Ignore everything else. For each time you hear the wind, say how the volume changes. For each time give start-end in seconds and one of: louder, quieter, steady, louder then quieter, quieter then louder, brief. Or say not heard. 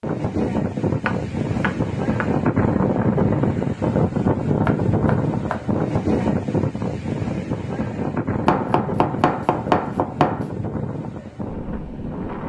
0.0-12.4 quieter.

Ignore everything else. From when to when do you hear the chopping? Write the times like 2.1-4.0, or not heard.
1.1-2.3, 4.7-5.6, 8.4-10.5.